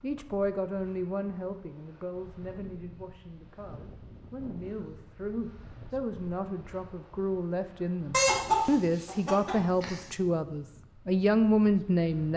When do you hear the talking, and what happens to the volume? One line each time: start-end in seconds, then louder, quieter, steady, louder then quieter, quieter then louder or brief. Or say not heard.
0.0-12.3 quieter then louder.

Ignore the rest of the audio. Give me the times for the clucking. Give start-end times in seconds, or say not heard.
8.1-10.1.